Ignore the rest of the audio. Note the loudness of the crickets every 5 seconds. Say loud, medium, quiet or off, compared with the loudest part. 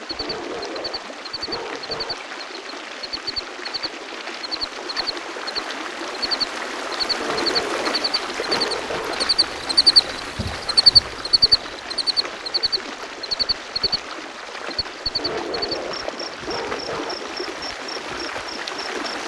quiet, loud, loud, quiet.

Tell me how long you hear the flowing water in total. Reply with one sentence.
You can hear the flowing water for 19 seconds altogether.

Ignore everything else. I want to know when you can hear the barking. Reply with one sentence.
You can hear the barking from 0.1 to 2.1 s, from 7.2 to 9.2 s and from 15.2 to 17.1 s.